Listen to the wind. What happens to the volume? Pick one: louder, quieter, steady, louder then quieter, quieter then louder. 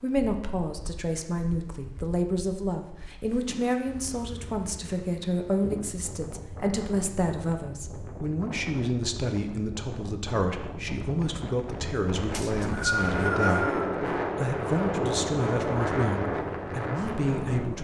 louder.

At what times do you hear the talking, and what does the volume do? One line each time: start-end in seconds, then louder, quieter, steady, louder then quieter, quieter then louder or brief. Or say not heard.
0.0-17.7 steady.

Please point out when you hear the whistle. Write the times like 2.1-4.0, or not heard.
12.3-13.8.